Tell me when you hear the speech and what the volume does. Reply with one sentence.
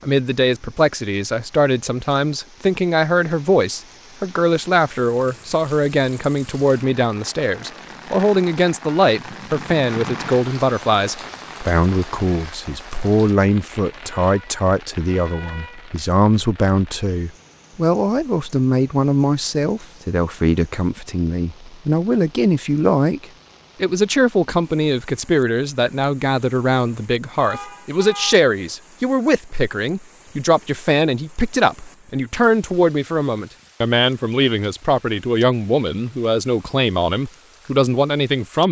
The speech can be heard from 0.0 to 38.6 s, at a steady volume.